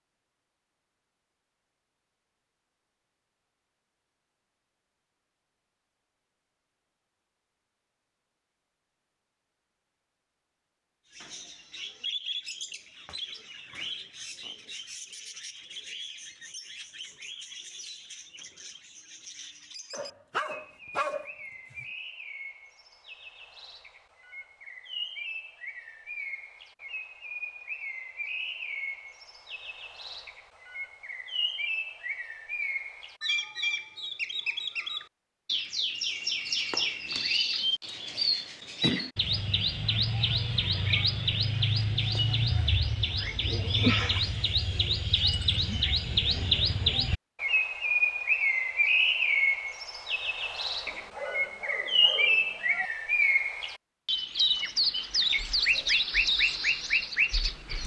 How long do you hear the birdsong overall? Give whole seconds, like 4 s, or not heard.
47 s.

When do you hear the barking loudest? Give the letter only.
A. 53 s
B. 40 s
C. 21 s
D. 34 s
C.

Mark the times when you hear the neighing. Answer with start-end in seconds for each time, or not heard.
not heard.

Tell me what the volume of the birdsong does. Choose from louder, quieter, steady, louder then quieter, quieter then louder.
louder.